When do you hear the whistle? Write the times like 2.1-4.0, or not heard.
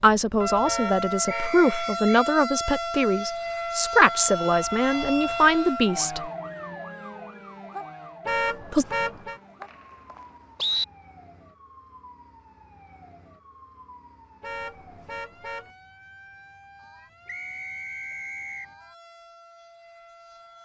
1.2-2.1, 8.9-10.8, 17.2-18.6.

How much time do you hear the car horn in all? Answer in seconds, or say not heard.
4 s.